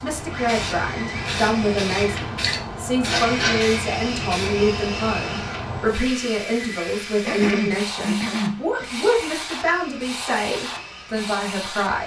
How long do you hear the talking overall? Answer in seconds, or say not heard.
12 s.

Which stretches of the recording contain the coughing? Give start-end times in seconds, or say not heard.
7.2-8.6.